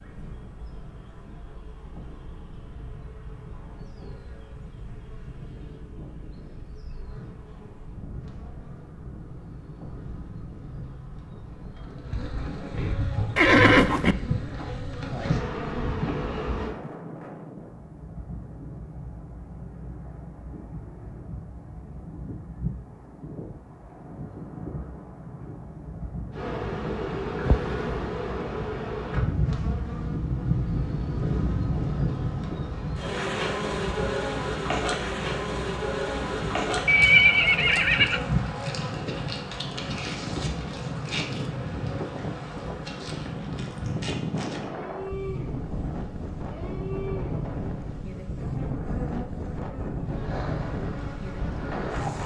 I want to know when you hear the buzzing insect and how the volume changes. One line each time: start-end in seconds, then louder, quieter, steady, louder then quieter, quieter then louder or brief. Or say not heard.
0.0-16.8 louder
26.3-52.2 quieter.